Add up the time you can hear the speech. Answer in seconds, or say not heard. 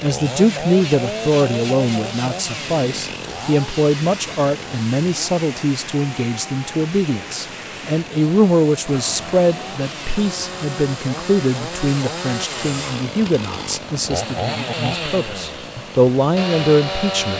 17 s.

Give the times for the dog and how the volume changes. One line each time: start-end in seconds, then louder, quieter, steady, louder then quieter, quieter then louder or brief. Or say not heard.
not heard.